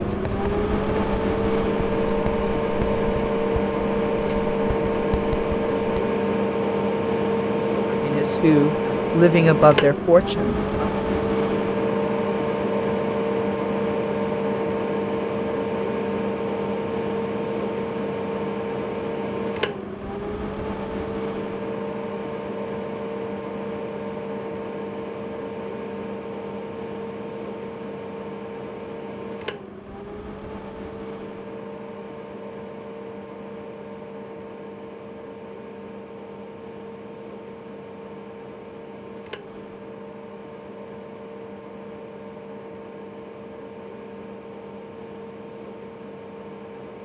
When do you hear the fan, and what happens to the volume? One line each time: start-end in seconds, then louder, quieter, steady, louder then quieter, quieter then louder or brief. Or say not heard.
0.0-47.0 quieter.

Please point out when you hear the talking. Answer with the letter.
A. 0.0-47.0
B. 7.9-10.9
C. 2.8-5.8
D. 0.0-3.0
B.